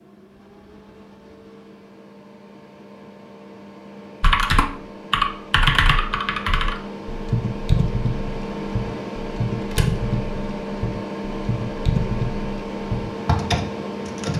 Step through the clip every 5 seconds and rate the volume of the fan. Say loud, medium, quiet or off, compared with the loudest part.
quiet, loud, loud.